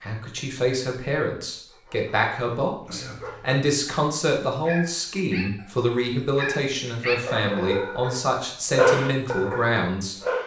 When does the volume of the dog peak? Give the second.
9 s.